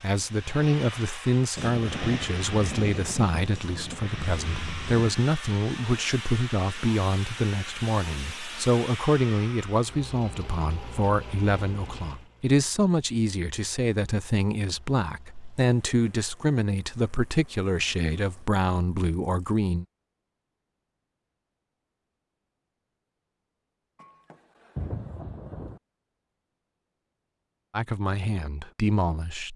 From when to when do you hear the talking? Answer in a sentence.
The talking can be heard from 0.0 to 19.9 s and from 27.7 to 29.5 s.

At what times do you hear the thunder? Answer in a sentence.
You can hear the thunder from 1.6 to 5.2 s and from 23.9 to 25.8 s.